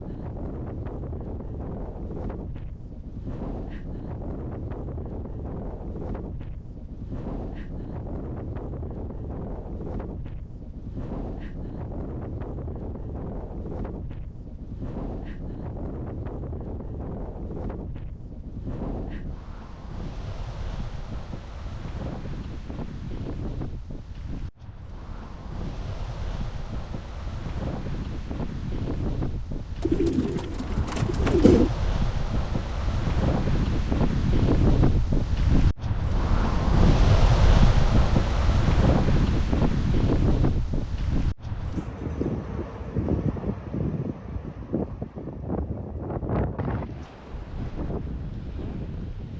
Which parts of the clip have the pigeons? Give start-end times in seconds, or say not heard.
29.8-31.7.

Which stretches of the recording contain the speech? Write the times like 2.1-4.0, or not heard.
not heard.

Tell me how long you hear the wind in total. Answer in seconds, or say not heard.
49 s.